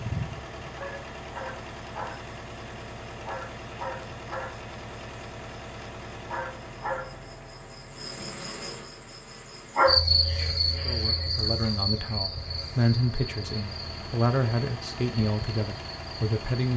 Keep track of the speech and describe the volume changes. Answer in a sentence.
The loudness of the speech goes up, then down.